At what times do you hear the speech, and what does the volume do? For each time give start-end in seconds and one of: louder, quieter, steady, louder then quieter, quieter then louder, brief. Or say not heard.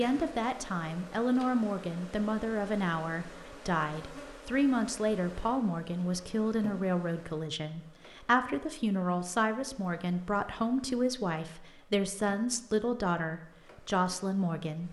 0.0-14.8 steady.